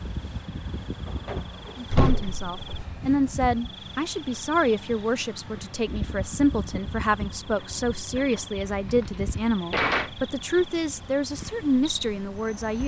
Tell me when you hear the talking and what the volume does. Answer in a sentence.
You can hear the talking from 1.8 to 12.8 s, at a steady volume.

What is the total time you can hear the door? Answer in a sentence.
The door can be heard for 2 seconds in total.